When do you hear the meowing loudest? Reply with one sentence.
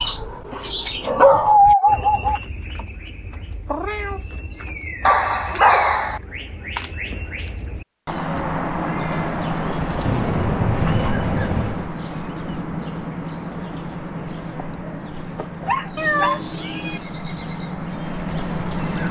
The volume of the meowing peaks at 16 seconds.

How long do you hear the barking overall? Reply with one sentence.
The barking can be heard for 7 seconds in total.